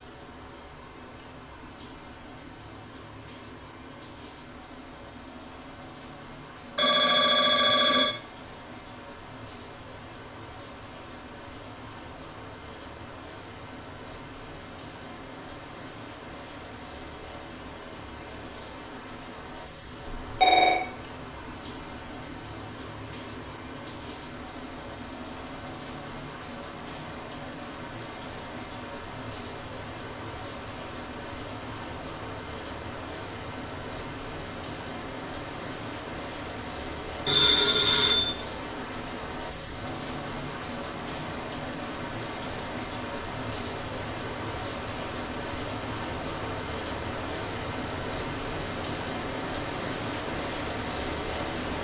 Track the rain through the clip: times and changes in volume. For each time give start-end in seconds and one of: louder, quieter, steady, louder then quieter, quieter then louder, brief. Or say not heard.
0.0-51.7 louder.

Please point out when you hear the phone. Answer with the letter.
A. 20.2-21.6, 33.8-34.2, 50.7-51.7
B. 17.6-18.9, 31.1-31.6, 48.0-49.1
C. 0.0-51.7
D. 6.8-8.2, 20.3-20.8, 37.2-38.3
D.